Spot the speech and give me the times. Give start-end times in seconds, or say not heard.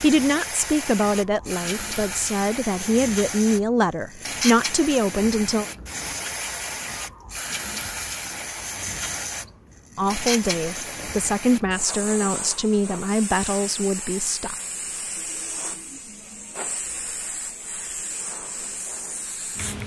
0.0-5.7, 9.9-14.6.